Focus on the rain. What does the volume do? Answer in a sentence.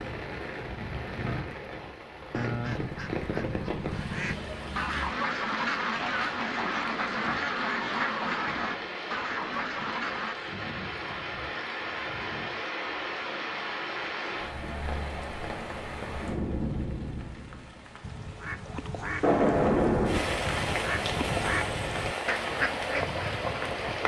The volume of the rain goes up.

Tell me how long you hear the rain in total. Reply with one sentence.
You can hear the rain for 24 seconds altogether.